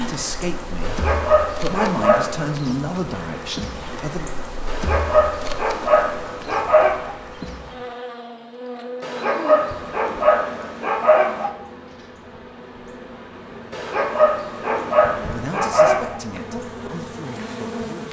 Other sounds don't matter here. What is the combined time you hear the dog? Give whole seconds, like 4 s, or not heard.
9 s.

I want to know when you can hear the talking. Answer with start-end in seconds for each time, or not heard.
0.0-4.3, 15.2-18.0.